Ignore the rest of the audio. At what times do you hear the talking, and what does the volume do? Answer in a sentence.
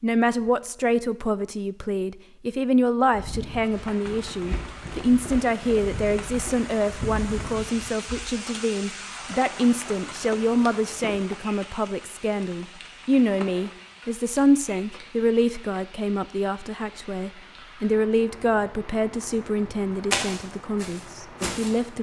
You can hear the talking from 0.0 to 21.9 s, at a steady volume.